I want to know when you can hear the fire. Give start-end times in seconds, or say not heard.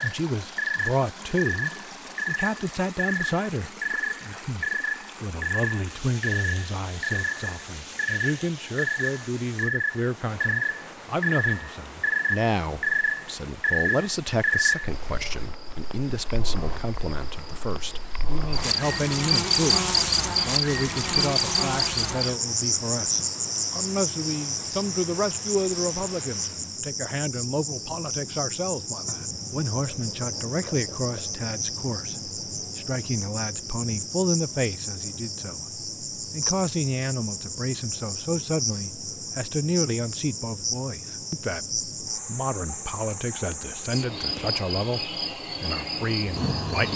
not heard.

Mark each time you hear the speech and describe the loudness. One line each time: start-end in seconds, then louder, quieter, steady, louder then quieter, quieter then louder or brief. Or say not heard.
0.0-46.9 steady.